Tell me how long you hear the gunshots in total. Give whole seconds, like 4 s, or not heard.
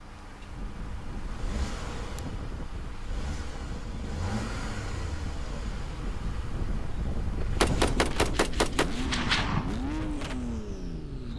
3 s.